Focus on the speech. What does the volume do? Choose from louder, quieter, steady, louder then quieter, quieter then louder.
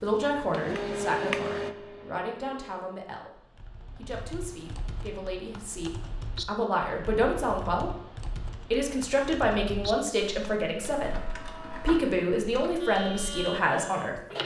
quieter then louder.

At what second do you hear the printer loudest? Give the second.
1 s.